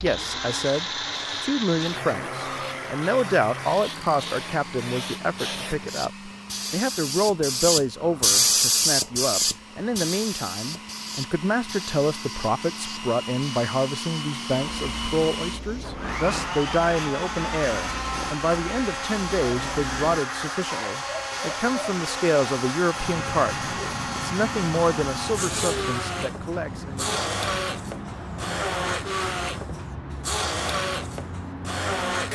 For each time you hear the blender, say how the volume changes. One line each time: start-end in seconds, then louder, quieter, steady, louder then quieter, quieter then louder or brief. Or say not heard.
0.0-32.2 quieter then louder.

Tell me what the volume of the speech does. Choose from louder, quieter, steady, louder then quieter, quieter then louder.
steady.